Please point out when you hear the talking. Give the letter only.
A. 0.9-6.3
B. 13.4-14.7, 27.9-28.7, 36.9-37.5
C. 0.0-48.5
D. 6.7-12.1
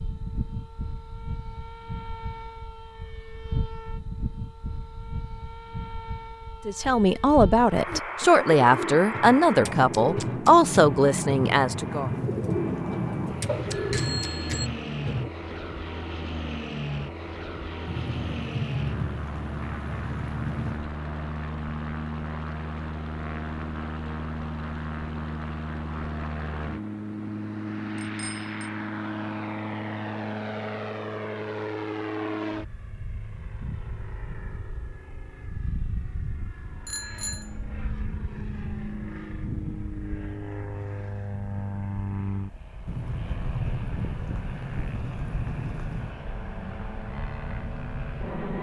D.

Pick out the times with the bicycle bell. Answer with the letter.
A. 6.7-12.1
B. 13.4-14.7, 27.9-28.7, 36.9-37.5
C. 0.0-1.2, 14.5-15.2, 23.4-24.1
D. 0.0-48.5
B.